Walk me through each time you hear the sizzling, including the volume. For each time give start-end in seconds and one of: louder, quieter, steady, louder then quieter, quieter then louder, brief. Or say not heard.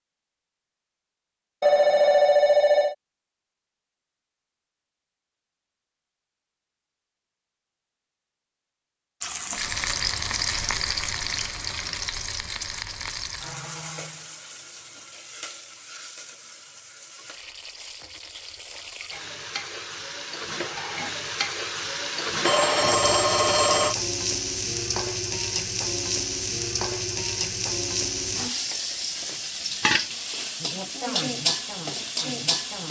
9.2-32.8 quieter then louder.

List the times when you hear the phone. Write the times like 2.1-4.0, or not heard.
1.6-3.0, 22.4-23.9.